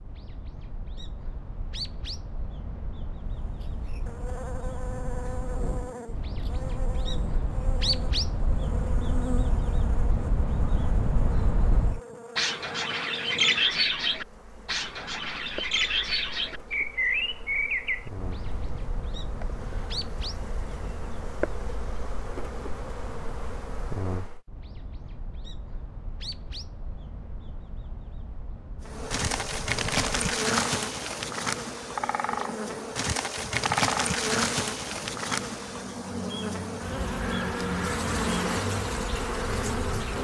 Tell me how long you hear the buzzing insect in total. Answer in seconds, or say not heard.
32 s.